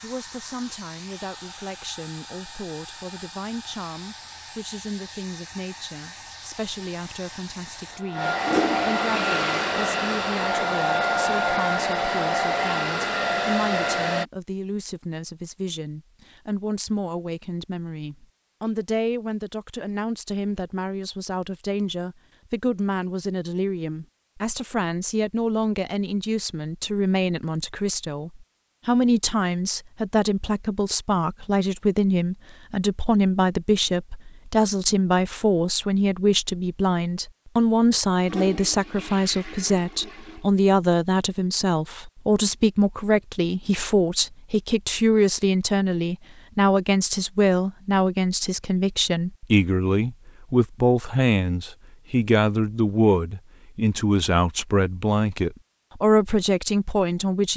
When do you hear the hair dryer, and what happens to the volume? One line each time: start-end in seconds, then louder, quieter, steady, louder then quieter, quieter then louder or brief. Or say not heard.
0.0-14.2 louder.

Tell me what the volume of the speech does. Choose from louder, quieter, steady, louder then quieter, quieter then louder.
louder.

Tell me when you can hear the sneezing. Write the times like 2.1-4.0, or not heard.
not heard.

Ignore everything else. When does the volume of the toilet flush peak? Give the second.
9 s.